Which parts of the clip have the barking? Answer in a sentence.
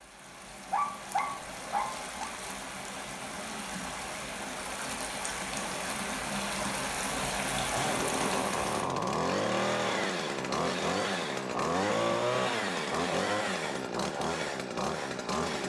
You can hear the barking from 0.7 to 2.3 s.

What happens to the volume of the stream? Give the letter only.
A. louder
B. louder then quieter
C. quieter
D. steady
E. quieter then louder
A.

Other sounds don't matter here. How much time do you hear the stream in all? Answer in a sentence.
You can hear the stream for 9 seconds altogether.